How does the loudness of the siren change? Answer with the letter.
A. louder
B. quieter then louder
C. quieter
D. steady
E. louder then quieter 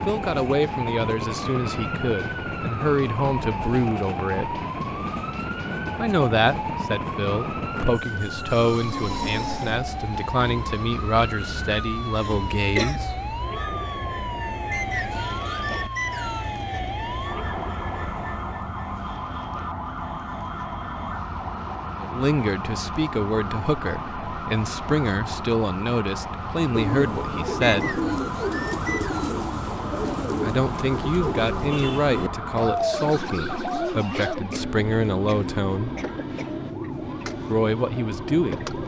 D.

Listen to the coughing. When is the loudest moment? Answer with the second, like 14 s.
13 s.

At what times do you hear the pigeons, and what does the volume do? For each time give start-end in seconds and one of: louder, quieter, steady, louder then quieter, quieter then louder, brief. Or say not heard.
26.7-34.4 steady.